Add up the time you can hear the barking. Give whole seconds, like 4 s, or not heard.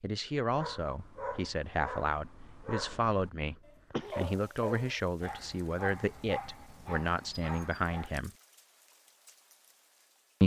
8 s.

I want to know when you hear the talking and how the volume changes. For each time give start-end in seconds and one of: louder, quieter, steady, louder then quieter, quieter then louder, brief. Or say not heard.
0.0-8.3 steady.